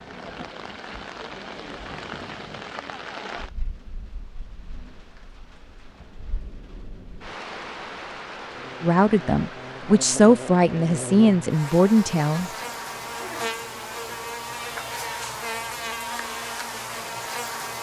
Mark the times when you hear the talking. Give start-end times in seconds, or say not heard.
8.8-12.5.